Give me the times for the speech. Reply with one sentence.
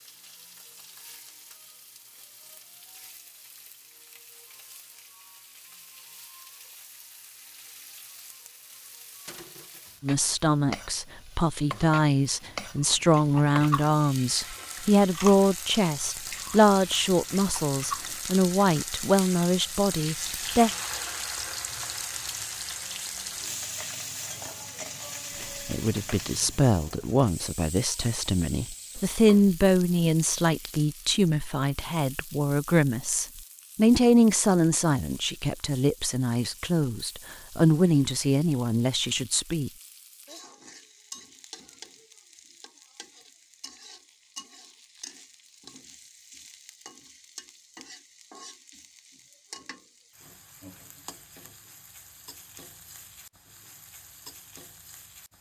You can hear the speech from 10.0 to 20.7 s and from 25.4 to 39.7 s.